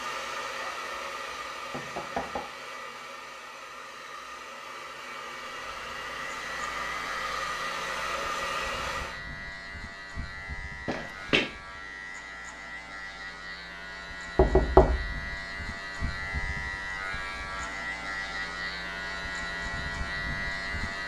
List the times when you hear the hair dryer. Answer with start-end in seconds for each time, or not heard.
0.0-9.2.